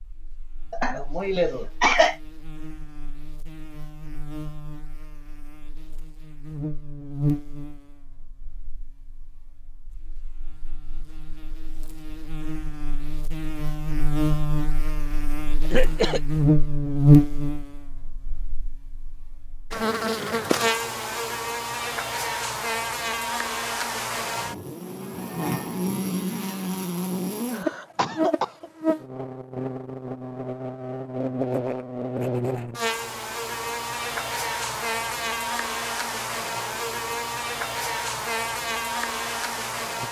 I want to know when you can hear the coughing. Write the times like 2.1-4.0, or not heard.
0.7-2.1, 15.7-16.2, 27.5-28.7.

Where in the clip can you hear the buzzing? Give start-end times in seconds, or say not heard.
0.0-40.0.